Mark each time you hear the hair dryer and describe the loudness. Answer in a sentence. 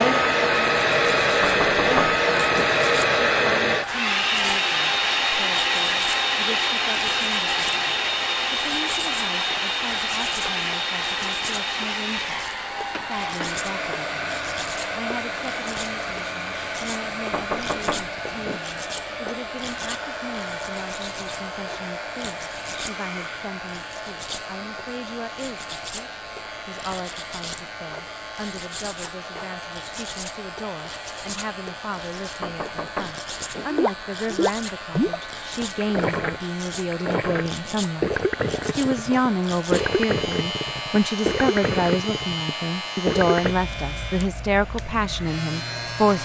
You can hear the hair dryer from 0.0 to 46.1 s, getting quieter.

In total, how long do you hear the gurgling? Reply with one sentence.
You can hear the gurgling for 10 seconds altogether.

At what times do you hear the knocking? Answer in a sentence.
The knocking can be heard from 1.4 to 2.7 s, from 17.3 to 18.6 s and from 32.4 to 33.7 s.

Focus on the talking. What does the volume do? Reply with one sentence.
The volume of the talking goes up.